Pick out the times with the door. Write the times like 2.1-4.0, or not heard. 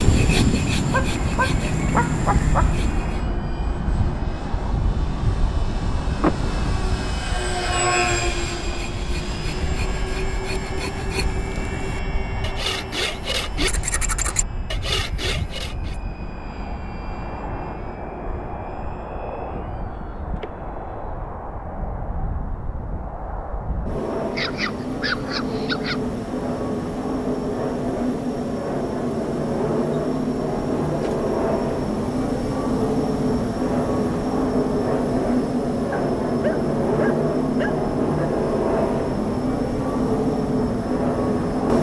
6.2-6.8.